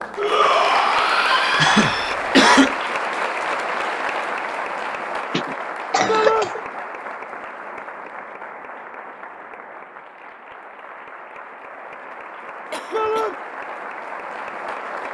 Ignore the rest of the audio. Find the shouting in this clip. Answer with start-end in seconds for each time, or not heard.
0.1-2.1, 6.0-6.5, 12.9-13.3.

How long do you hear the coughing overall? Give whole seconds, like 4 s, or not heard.
3 s.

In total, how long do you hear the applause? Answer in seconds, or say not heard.
15 s.